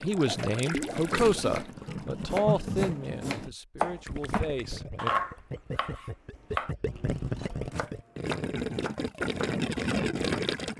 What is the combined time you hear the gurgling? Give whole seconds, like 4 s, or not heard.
11 s.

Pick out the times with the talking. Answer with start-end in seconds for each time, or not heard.
0.0-5.1.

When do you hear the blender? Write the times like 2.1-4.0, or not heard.
not heard.